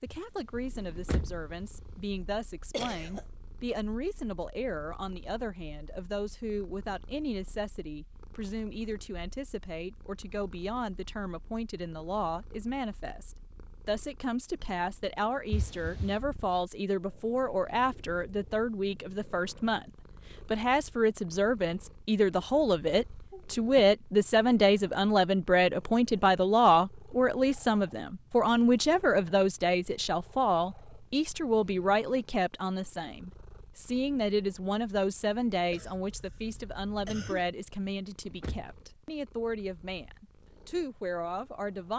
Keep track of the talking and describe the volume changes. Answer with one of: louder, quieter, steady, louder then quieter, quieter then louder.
louder then quieter.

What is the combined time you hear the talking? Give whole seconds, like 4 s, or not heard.
42 s.